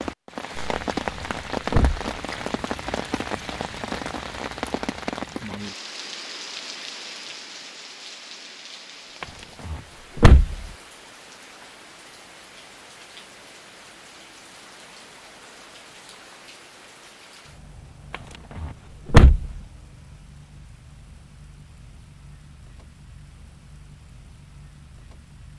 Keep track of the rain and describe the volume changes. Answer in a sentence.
The loudness of the rain goes down.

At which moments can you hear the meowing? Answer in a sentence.
You can't hear the meowing here.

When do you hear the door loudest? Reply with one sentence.
The loudest moment of the door is at 19 seconds.